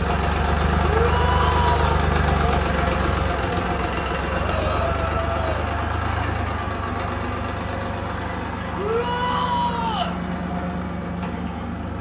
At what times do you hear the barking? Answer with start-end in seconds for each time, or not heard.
not heard.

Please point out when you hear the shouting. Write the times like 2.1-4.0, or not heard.
0.8-1.9, 4.4-5.7, 8.8-10.2.